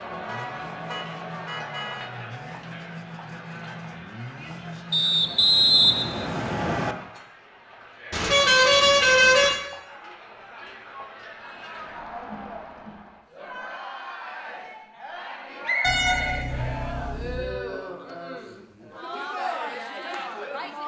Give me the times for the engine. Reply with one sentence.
The engine can be heard from 0.0 to 5.3 s.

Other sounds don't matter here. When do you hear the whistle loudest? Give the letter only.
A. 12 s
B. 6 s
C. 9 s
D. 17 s
B.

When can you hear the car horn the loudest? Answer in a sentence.
The volume of the car horn peaks at 9 seconds.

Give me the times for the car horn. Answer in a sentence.
The car horn can be heard from 0.2 to 2.1 s, from 8.1 to 9.6 s and from 15.8 to 17.5 s.